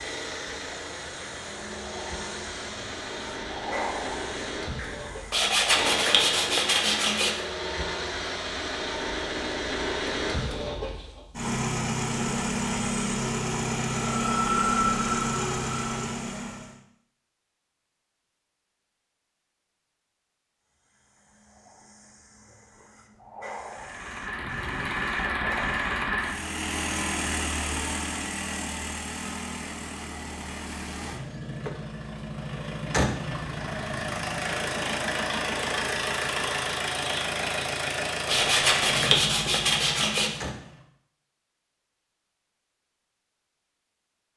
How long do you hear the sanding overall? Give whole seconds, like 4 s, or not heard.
4 s.